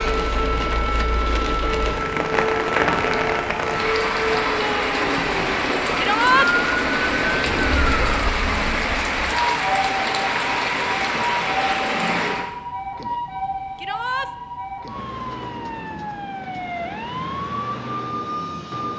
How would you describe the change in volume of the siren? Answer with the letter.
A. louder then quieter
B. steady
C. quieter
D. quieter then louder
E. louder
B.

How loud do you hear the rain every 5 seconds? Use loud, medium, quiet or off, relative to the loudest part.
loud, loud, loud, off.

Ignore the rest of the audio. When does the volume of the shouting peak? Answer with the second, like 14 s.
6 s.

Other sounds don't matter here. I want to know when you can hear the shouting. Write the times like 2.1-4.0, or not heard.
6.0-6.5, 13.8-14.3.